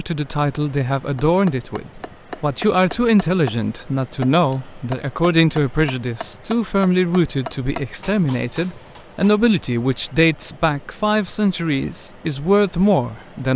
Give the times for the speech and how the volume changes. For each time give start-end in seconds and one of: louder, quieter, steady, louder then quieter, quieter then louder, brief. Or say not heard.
0.0-13.5 steady.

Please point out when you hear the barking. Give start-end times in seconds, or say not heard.
not heard.